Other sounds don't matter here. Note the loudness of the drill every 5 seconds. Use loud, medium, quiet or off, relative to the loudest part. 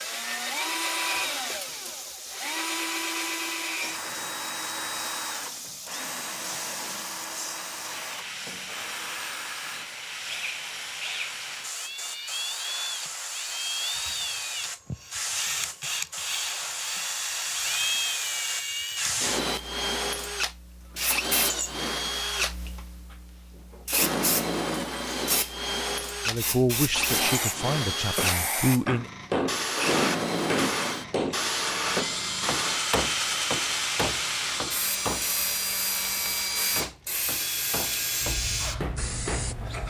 loud, medium, medium, loud, loud, loud, loud, loud.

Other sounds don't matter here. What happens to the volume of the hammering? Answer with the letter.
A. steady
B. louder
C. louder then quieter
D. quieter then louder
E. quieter
E.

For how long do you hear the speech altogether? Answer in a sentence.
You can hear the speech for 3 seconds altogether.